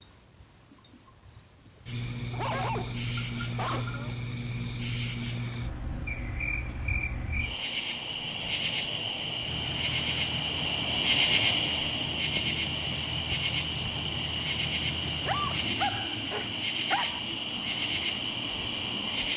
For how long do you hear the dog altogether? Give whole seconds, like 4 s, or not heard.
4 s.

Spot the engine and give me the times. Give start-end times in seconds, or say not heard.
9.4-15.8.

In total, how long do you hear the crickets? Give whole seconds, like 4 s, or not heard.
19 s.